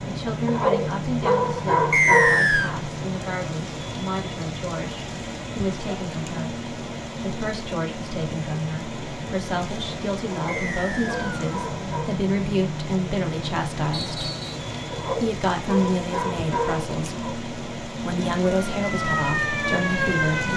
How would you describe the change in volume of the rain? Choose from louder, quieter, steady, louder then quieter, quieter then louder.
steady.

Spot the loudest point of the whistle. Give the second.
2 s.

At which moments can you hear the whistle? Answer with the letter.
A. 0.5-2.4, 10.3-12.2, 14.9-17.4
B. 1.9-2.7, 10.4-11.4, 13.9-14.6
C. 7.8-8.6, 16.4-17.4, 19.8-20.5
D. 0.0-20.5
B.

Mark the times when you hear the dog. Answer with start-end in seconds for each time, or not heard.
0.5-2.4, 10.3-12.2, 14.9-17.4.